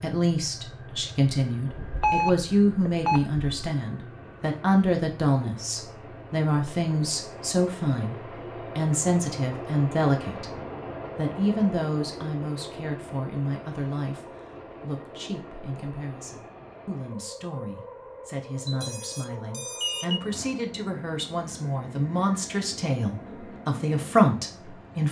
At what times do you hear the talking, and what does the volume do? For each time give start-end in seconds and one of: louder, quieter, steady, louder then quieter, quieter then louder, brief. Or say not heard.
0.0-10.6 steady
11.2-25.0 quieter then louder.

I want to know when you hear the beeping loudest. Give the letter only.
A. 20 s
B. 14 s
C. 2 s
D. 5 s
C.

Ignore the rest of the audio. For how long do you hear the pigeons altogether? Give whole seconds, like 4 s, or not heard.
not heard.